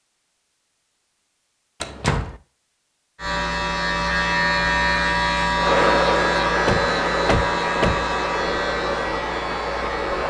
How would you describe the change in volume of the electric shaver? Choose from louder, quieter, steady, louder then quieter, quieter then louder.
quieter.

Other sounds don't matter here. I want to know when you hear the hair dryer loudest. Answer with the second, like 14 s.
6 s.